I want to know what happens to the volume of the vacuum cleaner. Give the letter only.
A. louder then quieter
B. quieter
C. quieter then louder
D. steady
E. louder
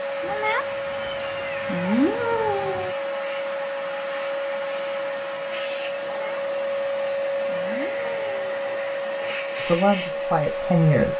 D.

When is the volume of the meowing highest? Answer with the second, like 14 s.
2 s.